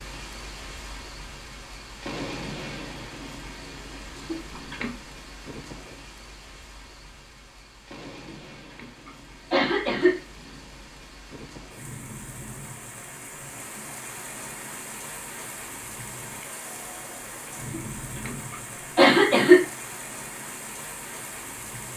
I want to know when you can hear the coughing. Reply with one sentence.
You can hear the coughing from 4.3 to 5.0 s, from 8.2 to 10.2 s and from 17.8 to 19.6 s.